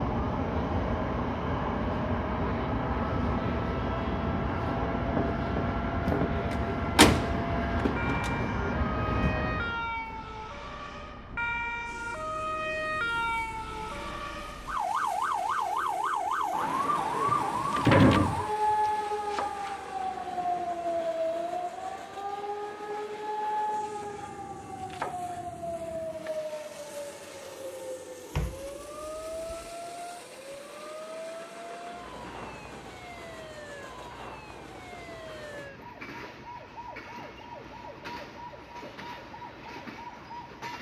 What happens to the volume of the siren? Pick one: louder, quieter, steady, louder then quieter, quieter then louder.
louder then quieter.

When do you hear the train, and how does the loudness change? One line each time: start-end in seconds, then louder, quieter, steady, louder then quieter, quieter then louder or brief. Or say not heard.
0.0-40.7 quieter.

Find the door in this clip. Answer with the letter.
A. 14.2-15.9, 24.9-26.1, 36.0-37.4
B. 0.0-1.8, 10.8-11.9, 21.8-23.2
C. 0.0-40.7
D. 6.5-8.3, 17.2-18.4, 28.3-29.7
D.